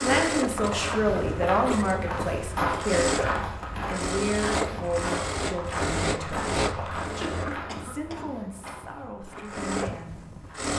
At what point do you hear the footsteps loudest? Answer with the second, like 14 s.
3 s.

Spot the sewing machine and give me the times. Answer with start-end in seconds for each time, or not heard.
0.0-10.7.